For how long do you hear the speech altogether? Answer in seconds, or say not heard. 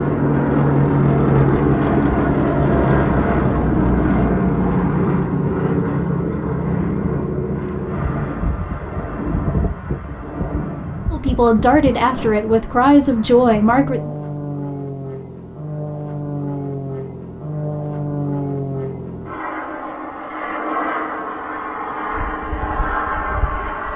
3 s.